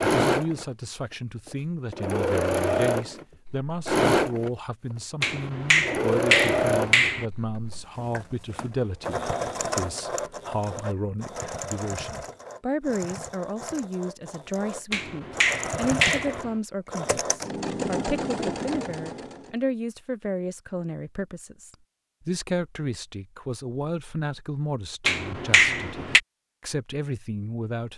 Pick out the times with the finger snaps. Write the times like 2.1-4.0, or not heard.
5.2-7.2, 14.9-16.6, 25.1-26.2.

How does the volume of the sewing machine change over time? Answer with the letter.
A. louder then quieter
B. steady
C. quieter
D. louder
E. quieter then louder
E.